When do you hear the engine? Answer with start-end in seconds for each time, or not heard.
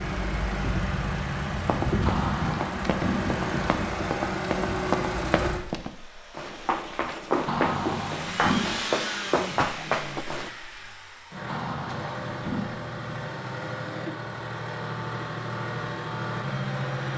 0.0-17.1.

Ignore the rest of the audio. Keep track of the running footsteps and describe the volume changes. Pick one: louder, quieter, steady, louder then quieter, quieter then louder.
louder.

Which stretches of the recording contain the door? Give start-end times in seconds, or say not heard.
2.0-3.3, 7.5-8.8, 11.4-13.2.